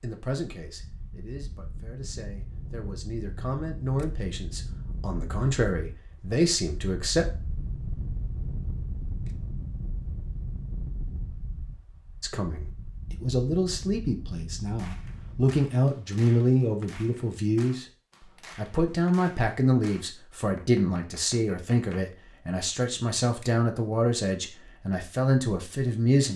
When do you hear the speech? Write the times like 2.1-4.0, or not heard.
0.0-7.3, 12.2-17.9, 18.6-26.3.